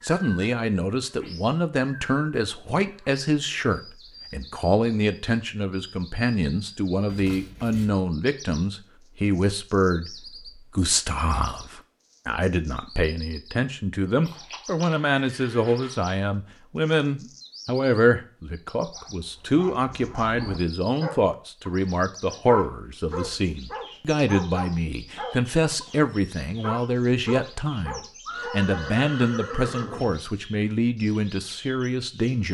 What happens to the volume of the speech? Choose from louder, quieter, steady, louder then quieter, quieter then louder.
steady.